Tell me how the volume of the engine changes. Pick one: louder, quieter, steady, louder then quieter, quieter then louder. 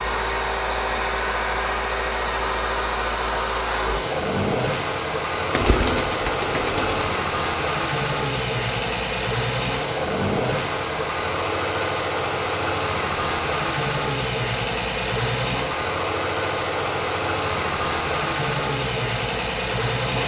steady.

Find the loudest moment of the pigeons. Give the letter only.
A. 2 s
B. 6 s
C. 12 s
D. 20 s
B.